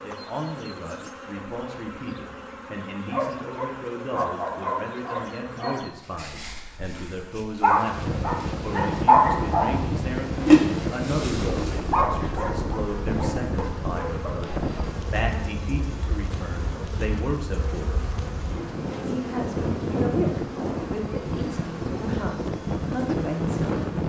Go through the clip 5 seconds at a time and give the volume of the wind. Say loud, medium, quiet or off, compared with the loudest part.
off, loud, loud, medium, loud.